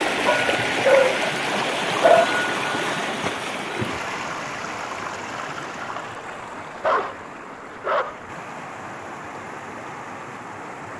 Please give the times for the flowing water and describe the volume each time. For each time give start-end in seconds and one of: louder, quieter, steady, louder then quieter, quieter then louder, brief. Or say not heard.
0.0-10.9 quieter.